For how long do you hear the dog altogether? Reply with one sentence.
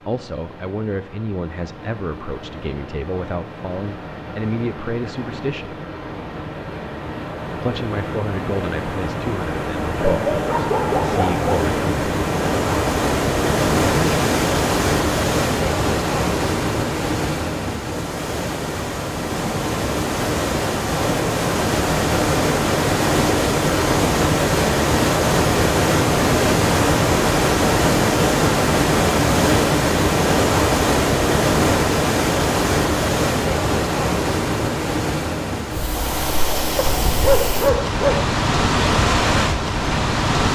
The dog can be heard for 3 seconds in total.